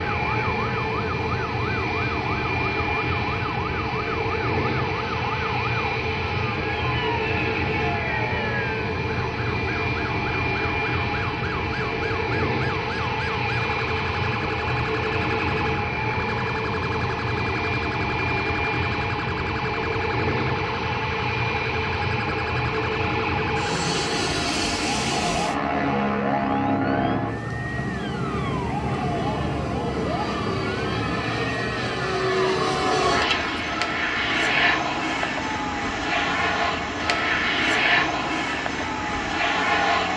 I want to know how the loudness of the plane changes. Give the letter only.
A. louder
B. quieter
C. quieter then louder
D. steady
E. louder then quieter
D.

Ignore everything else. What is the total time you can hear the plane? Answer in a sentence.
You can hear the plane for 40 seconds altogether.